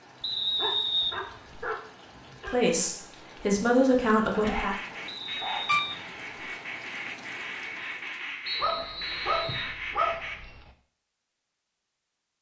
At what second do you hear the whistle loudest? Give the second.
1 s.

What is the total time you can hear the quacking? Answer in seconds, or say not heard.
6 s.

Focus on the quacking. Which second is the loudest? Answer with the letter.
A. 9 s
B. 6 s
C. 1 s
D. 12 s
B.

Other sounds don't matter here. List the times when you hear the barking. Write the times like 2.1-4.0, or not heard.
0.5-2.5, 4.3-6.1, 8.6-10.5.